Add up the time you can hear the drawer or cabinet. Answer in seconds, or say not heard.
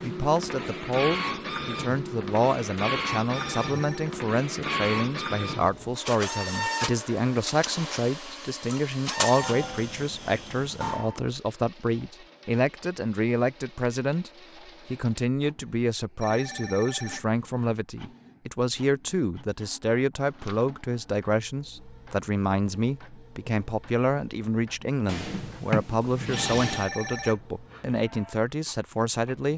2 s.